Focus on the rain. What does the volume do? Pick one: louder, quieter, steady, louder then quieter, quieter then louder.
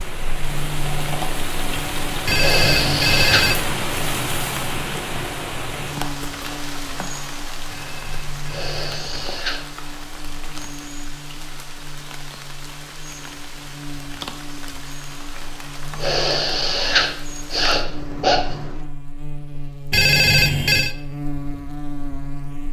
quieter.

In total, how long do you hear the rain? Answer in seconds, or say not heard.
19 s.